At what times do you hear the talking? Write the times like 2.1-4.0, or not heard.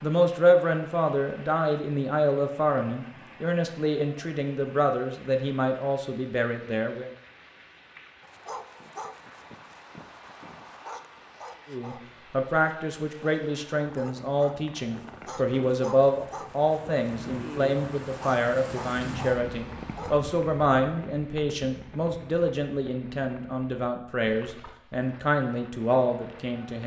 0.0-7.1, 11.7-26.8.